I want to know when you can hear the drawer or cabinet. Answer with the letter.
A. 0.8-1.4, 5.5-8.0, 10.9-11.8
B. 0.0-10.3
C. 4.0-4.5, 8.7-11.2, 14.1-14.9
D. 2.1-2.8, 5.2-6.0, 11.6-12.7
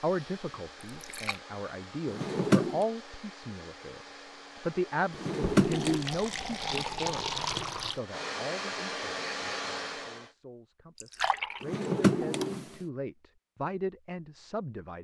D.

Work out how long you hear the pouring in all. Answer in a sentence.
You can hear the pouring for 4 seconds altogether.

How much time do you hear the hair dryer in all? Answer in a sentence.
The hair dryer can be heard for 10 seconds in total.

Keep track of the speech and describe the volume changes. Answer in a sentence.
The loudness of the speech goes down, then up.